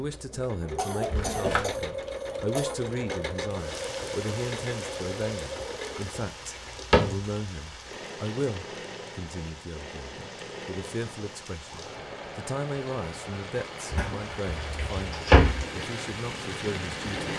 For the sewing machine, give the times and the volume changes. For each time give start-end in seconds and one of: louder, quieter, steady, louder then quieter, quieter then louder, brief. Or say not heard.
0.0-17.3 quieter.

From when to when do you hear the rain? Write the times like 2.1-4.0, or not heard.
3.5-17.3.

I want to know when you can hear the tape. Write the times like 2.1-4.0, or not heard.
not heard.